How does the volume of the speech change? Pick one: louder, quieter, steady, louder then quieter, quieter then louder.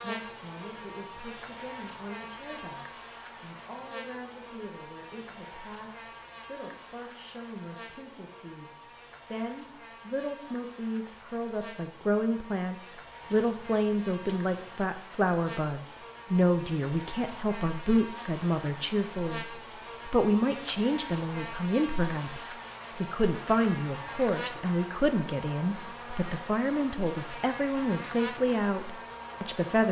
louder.